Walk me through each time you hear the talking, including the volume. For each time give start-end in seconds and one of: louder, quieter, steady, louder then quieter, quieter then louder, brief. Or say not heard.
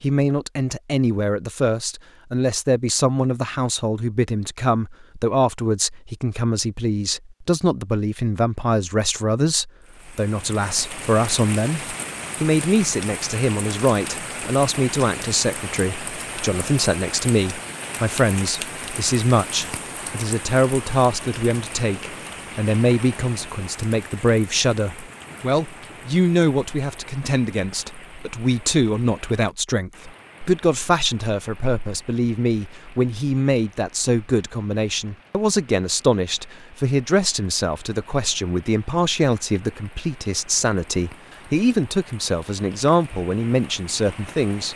0.0-44.7 steady.